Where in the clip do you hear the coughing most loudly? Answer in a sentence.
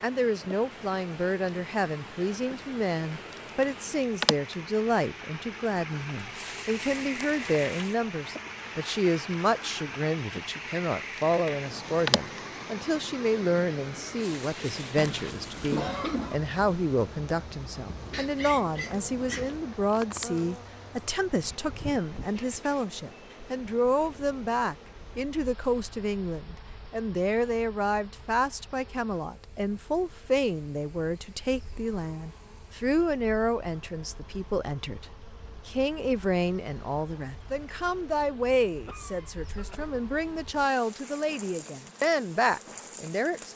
The loudest moment of the coughing is at 16 seconds.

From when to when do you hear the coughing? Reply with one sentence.
The coughing can be heard from 14.9 to 16.4 s and from 38.9 to 39.9 s.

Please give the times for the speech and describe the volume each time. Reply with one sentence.
The speech can be heard from 0.0 to 43.5 s, at a steady volume.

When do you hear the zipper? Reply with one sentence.
The zipper can't be heard in this clip.